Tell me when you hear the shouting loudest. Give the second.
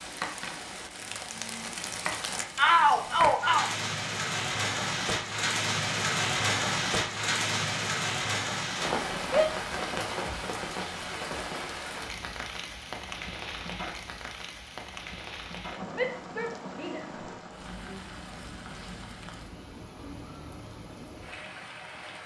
3 s.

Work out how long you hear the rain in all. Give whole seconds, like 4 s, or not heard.
22 s.